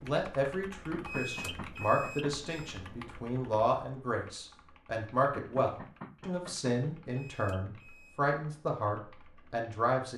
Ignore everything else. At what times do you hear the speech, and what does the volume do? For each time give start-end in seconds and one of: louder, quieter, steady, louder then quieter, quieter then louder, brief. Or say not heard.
0.0-10.1 steady.